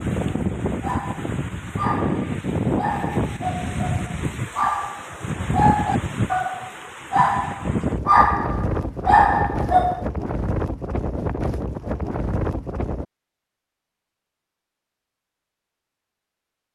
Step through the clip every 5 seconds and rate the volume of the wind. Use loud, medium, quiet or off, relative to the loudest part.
loud, loud, loud, off.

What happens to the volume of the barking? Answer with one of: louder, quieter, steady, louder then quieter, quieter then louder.
louder.